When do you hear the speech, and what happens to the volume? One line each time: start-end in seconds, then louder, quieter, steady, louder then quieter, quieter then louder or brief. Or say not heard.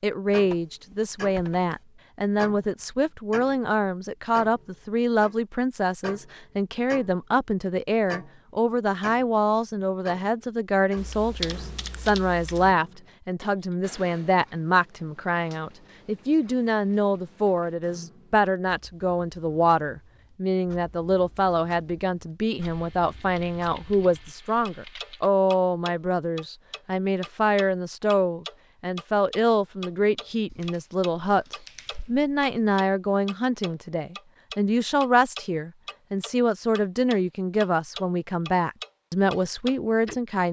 0.0-40.4 steady.